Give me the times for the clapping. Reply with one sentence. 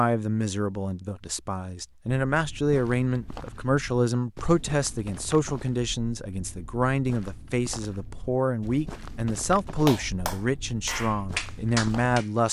You can hear the clapping from 9.8 to 12.3 s.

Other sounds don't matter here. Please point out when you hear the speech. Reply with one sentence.
You can hear the speech from 0.0 to 12.4 s.